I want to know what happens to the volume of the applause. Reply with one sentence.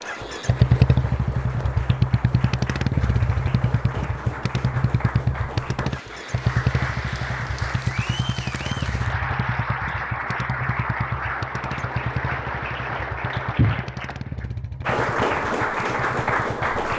The loudness of the applause goes up.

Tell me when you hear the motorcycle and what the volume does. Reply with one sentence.
You can hear the motorcycle from 0.0 to 16.9 s, getting quieter.